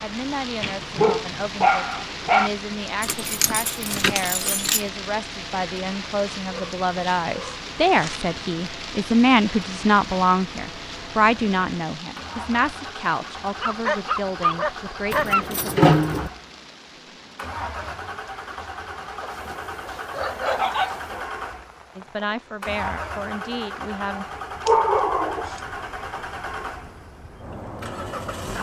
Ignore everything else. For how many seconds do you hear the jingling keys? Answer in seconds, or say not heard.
3 s.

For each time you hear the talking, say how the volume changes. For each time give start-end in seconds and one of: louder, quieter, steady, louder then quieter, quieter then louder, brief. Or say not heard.
0.0-15.8 louder then quieter
21.9-24.2 brief.